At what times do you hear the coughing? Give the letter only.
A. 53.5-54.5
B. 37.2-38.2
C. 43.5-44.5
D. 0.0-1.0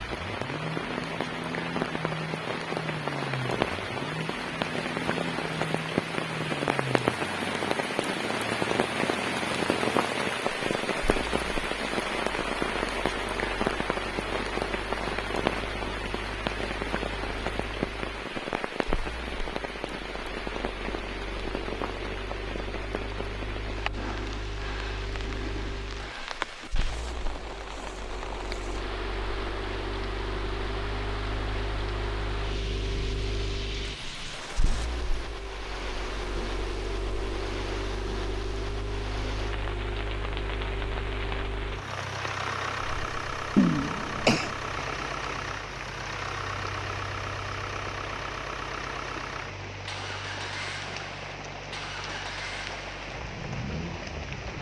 C.